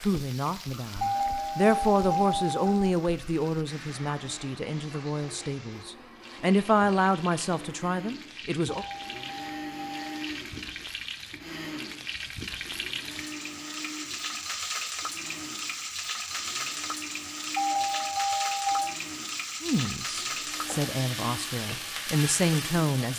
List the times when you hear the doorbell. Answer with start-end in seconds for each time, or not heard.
1.0-2.9, 8.7-10.3, 17.6-18.9.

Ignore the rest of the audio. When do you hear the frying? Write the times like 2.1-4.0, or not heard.
0.0-23.1.